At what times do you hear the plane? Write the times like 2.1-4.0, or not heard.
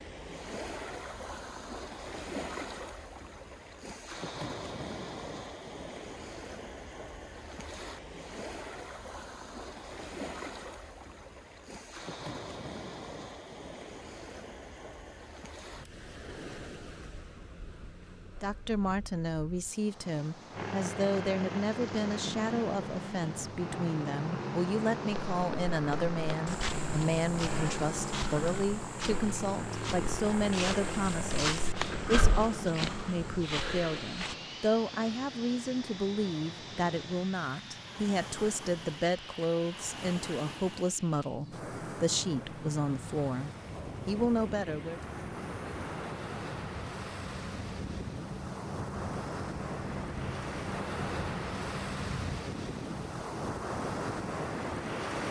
20.5-52.5.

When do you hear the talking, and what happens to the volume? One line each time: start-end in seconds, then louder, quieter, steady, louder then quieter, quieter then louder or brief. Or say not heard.
18.4-45.0 steady.